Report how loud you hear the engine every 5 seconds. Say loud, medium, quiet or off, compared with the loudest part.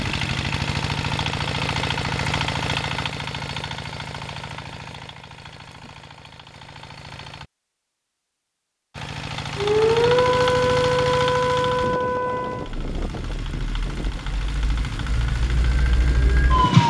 loud, medium, loud, medium.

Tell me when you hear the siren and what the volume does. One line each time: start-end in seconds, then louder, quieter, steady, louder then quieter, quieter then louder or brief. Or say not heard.
9.6-16.8 quieter then louder.